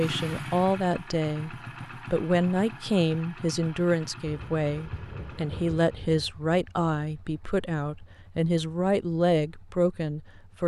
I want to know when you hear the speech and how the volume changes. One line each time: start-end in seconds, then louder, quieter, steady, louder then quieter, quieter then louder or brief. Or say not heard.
0.0-10.6 steady.